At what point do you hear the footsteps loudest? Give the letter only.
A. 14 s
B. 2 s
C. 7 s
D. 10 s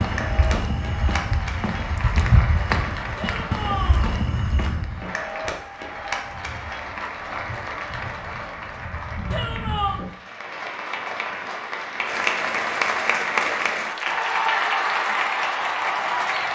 B.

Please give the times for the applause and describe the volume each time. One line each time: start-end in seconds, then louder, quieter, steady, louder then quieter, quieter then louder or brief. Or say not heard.
0.0-16.5 louder.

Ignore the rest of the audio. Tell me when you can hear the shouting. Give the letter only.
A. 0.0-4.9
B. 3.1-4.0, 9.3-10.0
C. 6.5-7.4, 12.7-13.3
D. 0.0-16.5
B.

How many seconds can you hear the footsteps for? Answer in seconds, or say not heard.
5 s.